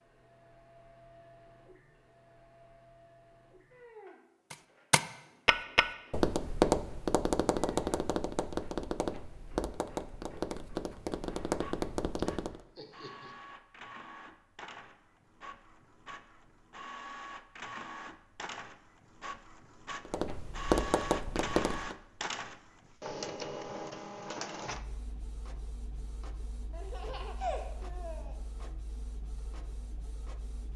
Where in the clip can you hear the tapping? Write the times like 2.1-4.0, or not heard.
4.5-12.6, 20.1-21.9.